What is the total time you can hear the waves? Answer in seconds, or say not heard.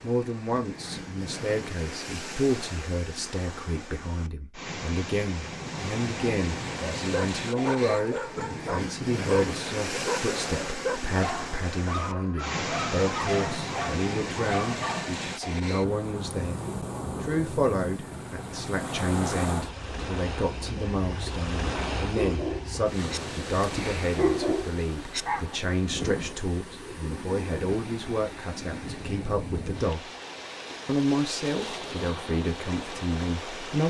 34 s.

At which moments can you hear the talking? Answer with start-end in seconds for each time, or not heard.
0.0-16.6, 17.2-30.1, 30.9-33.8.